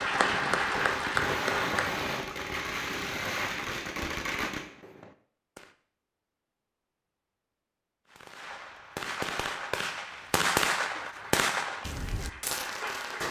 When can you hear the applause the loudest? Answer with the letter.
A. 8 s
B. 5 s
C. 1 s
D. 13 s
C.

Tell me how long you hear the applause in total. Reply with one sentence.
You can hear the applause for 4 seconds altogether.